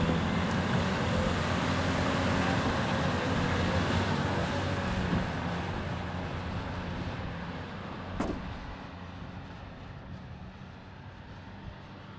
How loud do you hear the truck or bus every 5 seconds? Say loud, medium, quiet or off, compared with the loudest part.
loud, medium, quiet.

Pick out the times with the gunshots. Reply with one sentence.
You can hear the gunshots from 8.1 to 8.8 s.